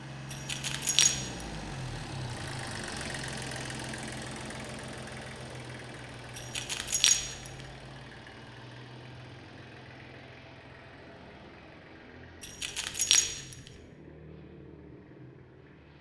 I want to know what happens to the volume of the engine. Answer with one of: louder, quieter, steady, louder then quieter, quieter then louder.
quieter.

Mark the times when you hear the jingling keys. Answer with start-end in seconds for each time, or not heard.
0.3-1.4, 6.3-7.5, 12.4-13.6.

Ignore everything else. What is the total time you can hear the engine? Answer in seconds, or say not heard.
16 s.